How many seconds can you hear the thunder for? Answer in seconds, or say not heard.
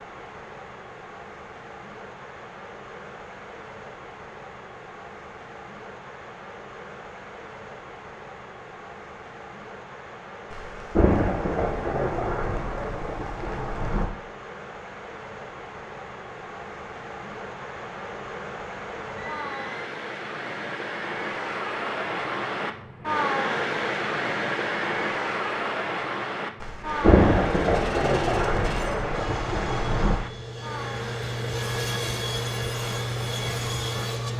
7 s.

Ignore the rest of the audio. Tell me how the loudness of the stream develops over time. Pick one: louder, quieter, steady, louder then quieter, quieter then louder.
louder then quieter.